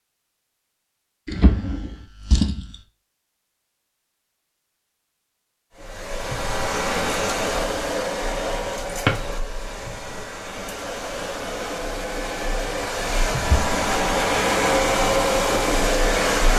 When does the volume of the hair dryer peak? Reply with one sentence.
The volume of the hair dryer peaks at 15 seconds.